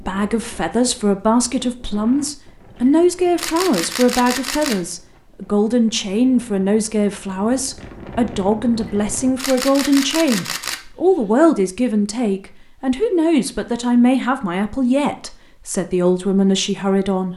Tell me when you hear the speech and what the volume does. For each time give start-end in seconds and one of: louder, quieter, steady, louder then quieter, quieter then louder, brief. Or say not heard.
0.0-17.3 steady.